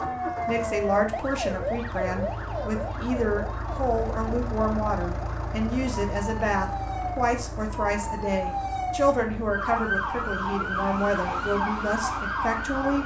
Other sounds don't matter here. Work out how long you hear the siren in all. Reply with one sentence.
The siren can be heard for 13 seconds in total.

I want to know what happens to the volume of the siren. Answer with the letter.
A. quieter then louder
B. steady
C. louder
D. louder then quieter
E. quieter
A.